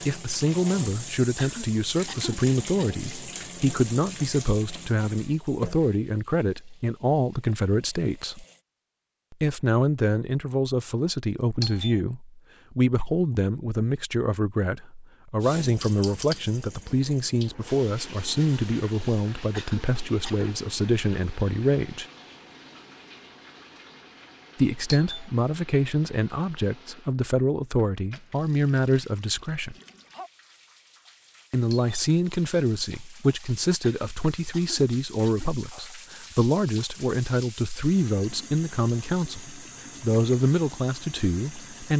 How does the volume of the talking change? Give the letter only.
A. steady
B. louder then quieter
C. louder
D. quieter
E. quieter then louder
A.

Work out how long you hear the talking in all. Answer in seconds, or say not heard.
37 s.